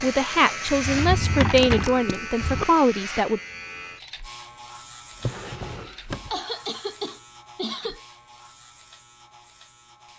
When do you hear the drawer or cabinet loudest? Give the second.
2 s.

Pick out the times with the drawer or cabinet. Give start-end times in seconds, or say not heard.
0.7-2.6, 5.2-6.4.